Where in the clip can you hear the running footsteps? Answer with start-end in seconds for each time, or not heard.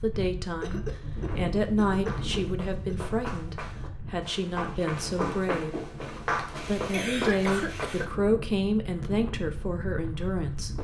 1.2-8.1.